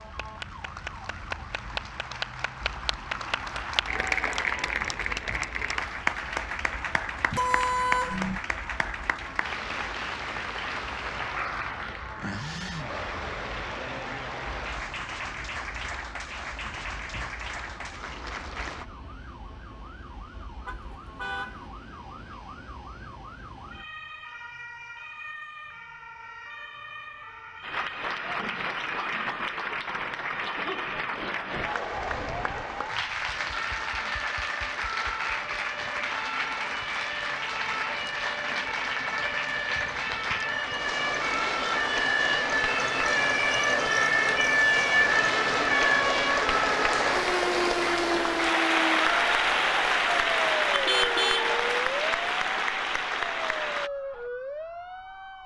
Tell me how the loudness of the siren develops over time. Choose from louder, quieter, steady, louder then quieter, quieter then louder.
louder.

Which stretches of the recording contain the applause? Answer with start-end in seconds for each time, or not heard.
0.0-18.9, 27.6-53.9.